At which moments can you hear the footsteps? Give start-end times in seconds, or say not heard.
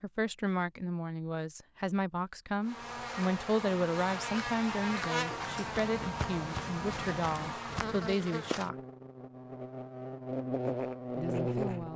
5.4-8.2.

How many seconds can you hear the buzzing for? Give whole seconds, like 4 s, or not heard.
9 s.